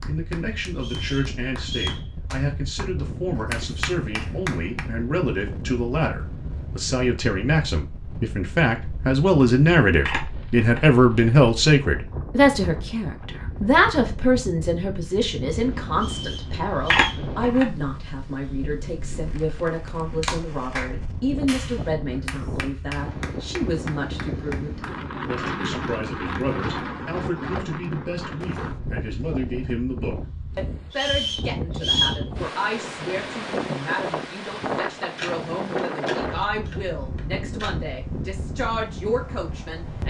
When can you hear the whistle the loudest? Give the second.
32 s.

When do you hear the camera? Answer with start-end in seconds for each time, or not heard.
10.1-10.8, 16.9-17.6, 35.1-37.7.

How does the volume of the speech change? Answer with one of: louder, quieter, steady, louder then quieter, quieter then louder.
louder then quieter.